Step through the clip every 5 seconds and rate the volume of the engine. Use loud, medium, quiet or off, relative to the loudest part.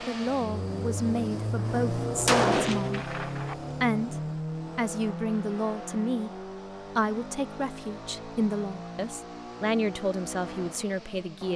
loud, medium, medium.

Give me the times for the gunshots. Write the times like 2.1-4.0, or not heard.
1.6-3.5.